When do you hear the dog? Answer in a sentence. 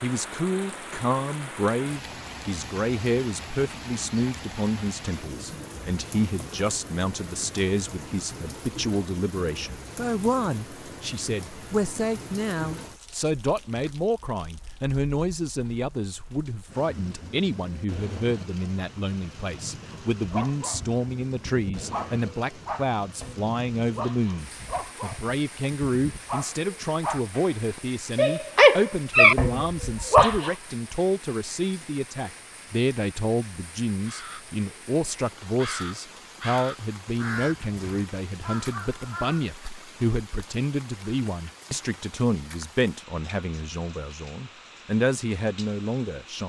You can hear the dog from 19.9 to 30.5 s.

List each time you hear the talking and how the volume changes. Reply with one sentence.
The talking can be heard from 0.0 to 46.4 s, at a steady volume.